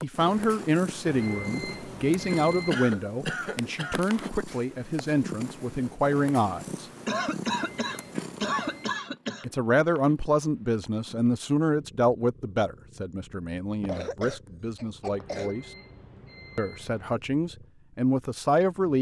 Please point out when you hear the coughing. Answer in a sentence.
You can hear the coughing from 2.7 to 4.0 s, from 7.0 to 9.4 s and from 13.8 to 15.6 s.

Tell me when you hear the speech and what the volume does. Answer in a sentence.
The speech can be heard from 0.0 to 6.8 s, at a steady volume; from 9.4 to 15.7 s, getting quieter; and briefly from 16.6 to 18.9 s.